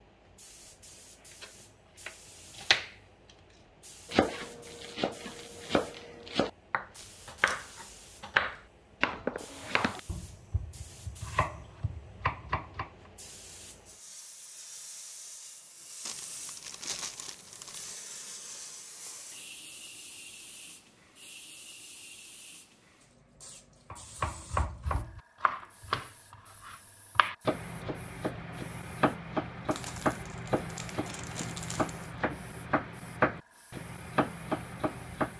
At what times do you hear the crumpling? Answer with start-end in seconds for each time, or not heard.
7.0-7.7, 16.1-17.9, 29.7-32.1.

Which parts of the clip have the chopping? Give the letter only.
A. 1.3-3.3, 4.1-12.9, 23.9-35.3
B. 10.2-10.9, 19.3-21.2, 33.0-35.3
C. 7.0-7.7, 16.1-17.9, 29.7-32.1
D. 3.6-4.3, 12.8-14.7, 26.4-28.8
A.